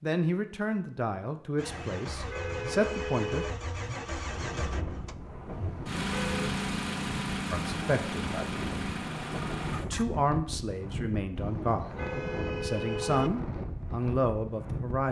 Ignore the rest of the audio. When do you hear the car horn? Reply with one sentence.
The car horn can be heard from 1.6 to 3.5 s, from 5.5 to 6.5 s and from 11.3 to 13.3 s.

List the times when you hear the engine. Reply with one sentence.
You can hear the engine from 1.6 to 10.1 s.